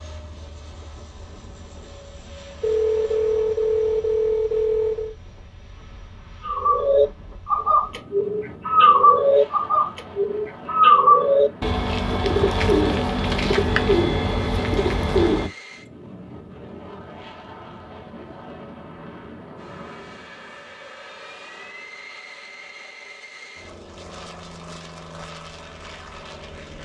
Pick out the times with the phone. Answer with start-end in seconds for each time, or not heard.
2.6-5.2.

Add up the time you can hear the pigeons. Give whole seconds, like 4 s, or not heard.
9 s.